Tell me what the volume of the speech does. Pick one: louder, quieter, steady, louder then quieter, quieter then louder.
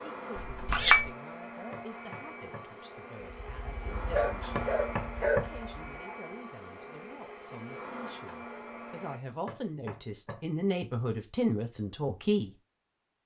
louder.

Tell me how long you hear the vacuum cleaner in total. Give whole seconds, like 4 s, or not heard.
9 s.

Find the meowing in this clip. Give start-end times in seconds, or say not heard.
not heard.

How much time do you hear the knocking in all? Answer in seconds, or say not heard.
3 s.